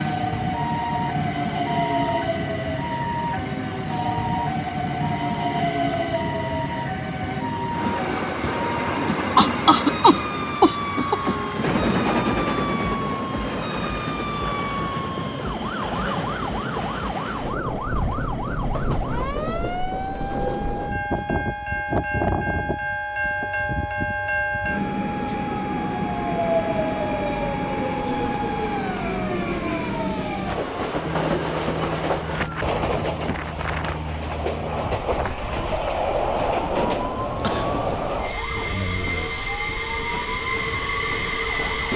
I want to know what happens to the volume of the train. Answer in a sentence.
The volume of the train stays about the same.